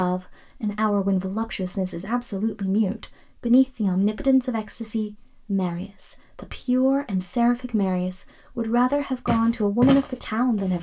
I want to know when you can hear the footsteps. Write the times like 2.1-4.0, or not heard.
9.2-10.7.